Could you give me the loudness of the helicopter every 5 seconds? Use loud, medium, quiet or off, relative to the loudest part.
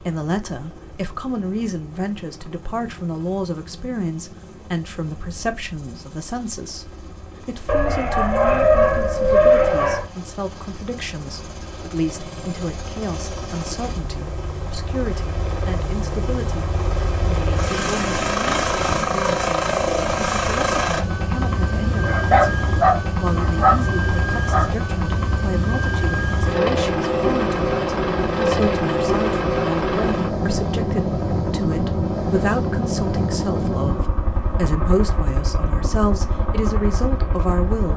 quiet, quiet, quiet, loud, loud, loud, loud, medium.